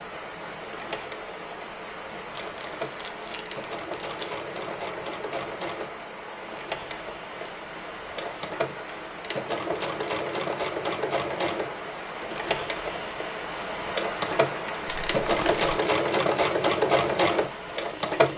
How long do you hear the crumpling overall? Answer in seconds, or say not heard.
3 s.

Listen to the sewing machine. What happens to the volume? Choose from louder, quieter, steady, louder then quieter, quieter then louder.
louder.